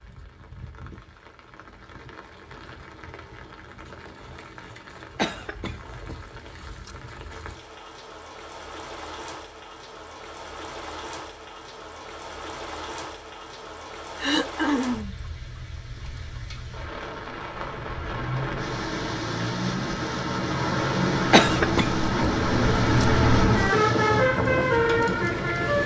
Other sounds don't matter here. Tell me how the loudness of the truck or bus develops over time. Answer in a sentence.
The loudness of the truck or bus goes up.